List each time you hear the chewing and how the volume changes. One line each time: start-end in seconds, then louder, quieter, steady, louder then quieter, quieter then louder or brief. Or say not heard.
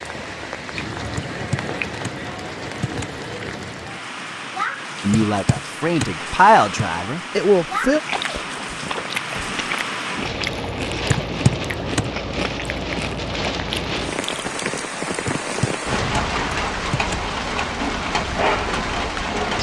7.8-14.6 steady.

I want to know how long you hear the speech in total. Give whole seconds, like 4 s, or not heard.
3 s.